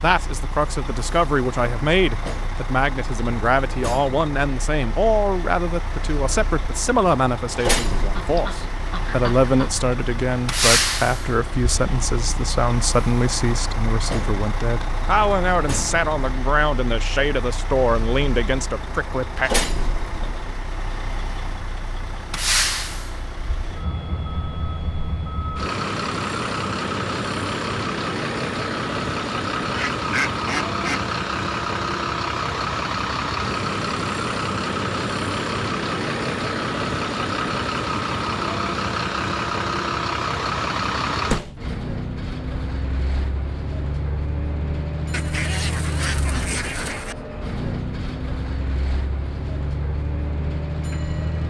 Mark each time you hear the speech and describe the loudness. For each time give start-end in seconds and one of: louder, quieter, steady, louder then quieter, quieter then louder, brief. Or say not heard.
0.0-19.5 steady.